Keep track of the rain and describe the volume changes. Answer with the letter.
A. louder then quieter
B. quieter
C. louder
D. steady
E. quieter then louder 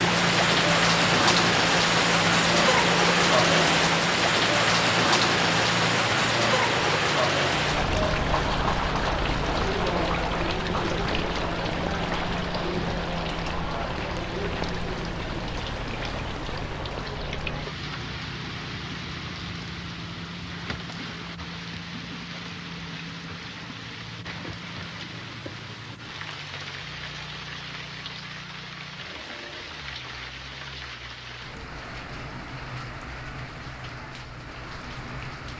B.